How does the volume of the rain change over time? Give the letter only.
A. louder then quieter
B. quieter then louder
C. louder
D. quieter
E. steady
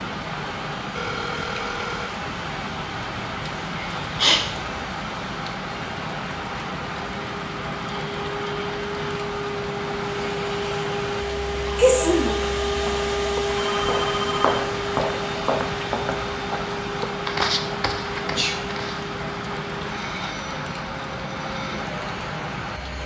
E.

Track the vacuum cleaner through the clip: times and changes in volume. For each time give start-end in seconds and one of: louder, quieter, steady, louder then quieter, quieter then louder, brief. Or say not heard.
0.0-23.0 louder then quieter.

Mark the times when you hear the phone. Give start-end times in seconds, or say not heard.
0.9-2.1, 13.6-14.4.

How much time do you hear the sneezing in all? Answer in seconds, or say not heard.
2 s.